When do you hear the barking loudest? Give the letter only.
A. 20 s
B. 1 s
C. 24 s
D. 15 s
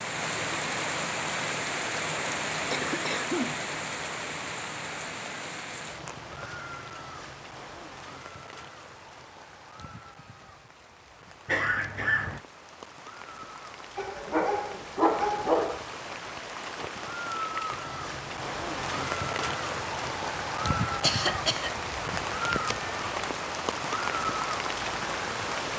D.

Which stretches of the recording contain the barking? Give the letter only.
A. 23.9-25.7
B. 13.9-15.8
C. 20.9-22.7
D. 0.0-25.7
B.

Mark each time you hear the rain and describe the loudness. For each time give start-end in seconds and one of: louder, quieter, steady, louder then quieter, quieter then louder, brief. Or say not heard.
0.0-25.7 quieter then louder.